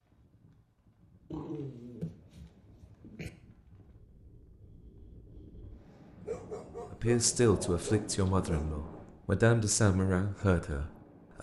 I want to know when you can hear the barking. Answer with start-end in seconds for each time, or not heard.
1.3-3.3, 6.2-8.7.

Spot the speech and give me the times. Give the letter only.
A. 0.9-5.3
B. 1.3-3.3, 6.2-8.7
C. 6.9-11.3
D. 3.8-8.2
C.